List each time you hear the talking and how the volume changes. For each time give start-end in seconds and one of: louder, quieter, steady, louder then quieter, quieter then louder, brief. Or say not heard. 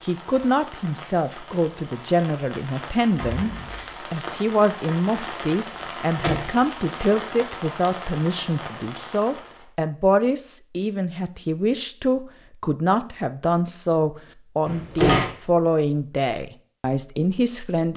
0.0-17.9 steady.